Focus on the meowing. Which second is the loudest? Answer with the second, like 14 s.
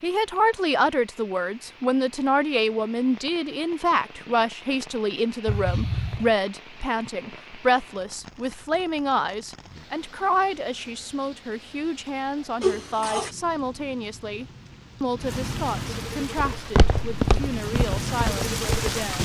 13 s.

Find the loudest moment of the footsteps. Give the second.
17 s.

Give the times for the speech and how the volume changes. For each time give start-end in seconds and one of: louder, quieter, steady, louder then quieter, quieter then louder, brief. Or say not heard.
0.0-19.1 quieter.